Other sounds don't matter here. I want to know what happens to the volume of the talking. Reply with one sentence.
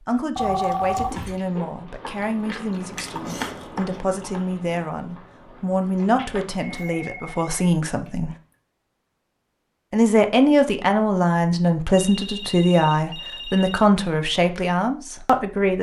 The loudness of the talking goes up.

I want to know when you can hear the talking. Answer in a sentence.
The talking can be heard from 0.1 to 8.3 s and from 9.9 to 15.7 s.